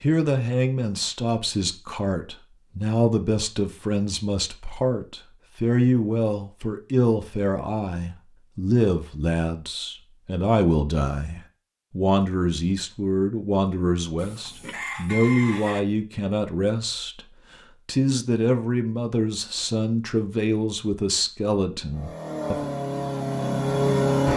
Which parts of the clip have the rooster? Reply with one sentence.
You can hear the rooster from 14.2 to 15.8 s.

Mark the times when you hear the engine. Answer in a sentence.
You can hear the engine from 21.9 to 24.3 s.